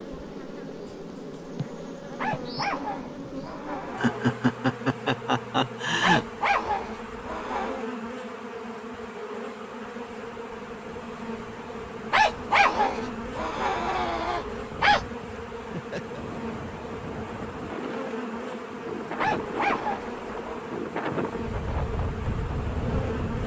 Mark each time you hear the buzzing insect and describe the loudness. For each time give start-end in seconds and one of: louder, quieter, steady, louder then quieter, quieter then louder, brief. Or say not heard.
0.0-23.4 steady.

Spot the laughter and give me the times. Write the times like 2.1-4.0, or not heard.
4.0-6.2, 15.6-16.2.